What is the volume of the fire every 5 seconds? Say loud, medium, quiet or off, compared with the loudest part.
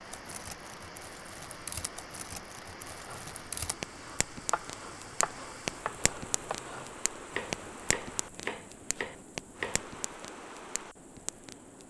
loud, loud, medium.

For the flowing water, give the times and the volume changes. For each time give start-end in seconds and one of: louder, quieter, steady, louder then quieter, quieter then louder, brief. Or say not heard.
0.0-11.8 steady.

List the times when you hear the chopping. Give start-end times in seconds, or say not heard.
3.0-9.8.